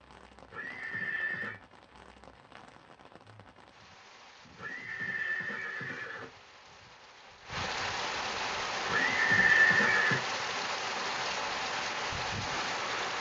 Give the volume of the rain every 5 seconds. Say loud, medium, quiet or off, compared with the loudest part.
quiet, loud, loud.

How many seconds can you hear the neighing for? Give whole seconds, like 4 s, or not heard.
4 s.